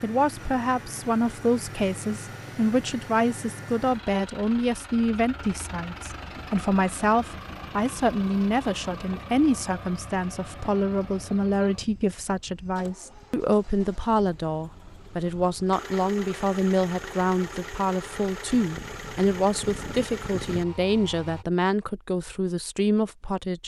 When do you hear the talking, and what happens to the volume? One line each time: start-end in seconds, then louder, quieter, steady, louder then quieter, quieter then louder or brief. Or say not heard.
0.0-23.6 steady.